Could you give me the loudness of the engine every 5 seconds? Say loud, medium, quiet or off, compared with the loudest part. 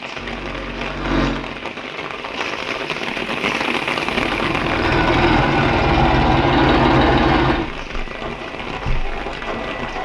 medium, loud.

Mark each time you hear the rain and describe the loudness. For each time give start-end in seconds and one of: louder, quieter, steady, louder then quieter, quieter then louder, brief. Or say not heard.
0.0-10.0 louder then quieter.